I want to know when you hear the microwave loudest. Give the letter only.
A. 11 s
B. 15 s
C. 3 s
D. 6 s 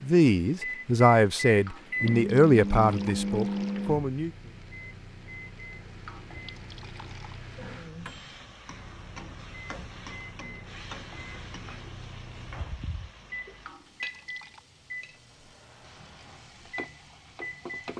C.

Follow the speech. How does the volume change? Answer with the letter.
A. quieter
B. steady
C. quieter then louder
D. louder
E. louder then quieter
A.